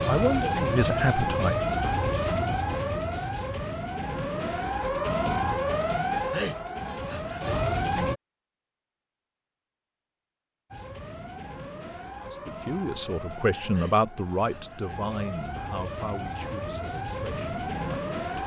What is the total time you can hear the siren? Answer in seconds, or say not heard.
16 s.